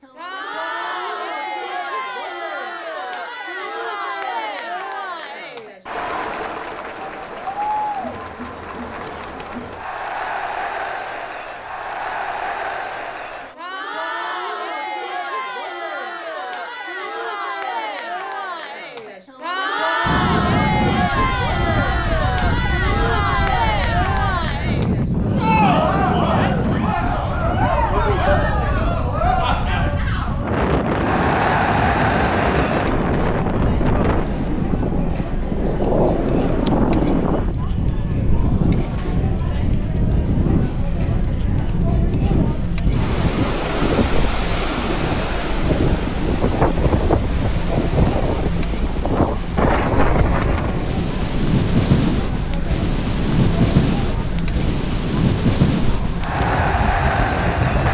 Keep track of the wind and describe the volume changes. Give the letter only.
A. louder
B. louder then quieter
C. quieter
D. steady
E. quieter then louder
D.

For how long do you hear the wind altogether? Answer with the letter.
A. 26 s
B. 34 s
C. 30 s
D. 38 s
D.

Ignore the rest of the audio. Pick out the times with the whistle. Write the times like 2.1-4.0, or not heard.
not heard.